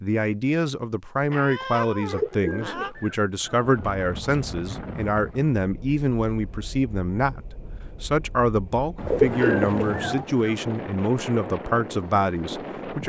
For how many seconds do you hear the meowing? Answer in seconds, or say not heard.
3 s.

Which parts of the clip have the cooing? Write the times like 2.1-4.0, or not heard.
2.1-3.9, 9.1-10.7.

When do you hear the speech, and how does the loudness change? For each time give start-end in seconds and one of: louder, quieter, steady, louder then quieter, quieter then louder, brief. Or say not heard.
0.0-13.0 steady.